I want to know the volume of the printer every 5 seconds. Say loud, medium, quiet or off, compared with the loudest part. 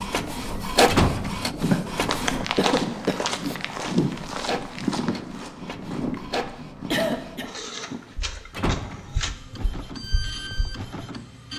loud, medium, medium.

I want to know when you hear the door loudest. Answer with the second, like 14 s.
1 s.